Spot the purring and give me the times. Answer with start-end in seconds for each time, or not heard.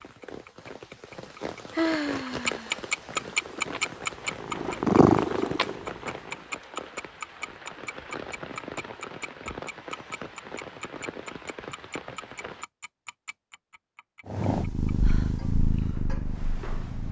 3.1-6.5, 14.3-17.0.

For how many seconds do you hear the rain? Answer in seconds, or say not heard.
13 s.